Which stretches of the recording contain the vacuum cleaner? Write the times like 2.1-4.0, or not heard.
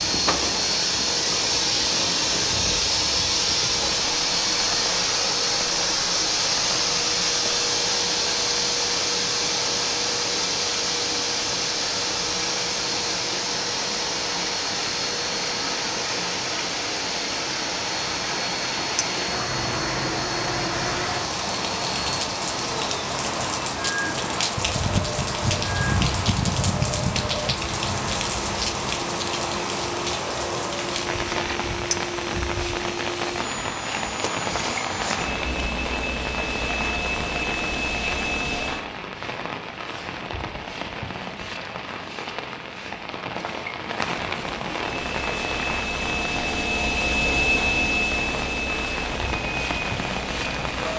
0.0-38.9, 44.8-50.9.